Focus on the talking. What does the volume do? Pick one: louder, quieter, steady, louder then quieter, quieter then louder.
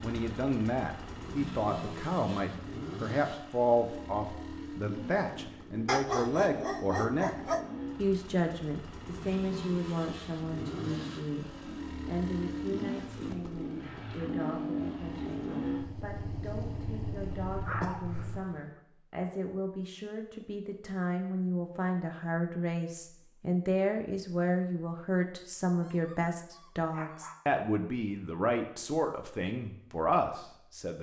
quieter then louder.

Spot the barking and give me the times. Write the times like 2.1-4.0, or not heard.
5.8-7.7, 17.4-18.8, 25.8-27.4.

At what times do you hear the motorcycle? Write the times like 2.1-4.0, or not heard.
0.0-18.4.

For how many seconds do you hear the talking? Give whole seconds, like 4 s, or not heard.
30 s.